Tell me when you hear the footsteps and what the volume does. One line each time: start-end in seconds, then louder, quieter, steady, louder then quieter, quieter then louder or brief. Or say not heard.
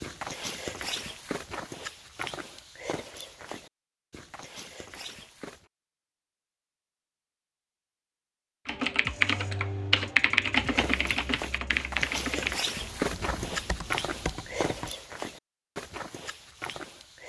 0.0-5.7 quieter
10.6-17.2 louder then quieter.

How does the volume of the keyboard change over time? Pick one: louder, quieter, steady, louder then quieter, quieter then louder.
quieter.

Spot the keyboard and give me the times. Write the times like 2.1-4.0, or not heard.
8.7-14.9.